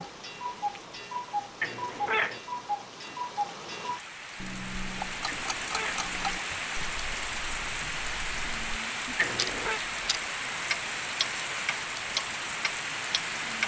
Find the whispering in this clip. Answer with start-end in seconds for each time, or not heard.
not heard.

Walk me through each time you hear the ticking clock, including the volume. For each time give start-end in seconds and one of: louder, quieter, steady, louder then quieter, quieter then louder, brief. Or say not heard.
0.0-13.6 quieter then louder.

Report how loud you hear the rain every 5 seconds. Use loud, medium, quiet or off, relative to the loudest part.
medium, loud, loud.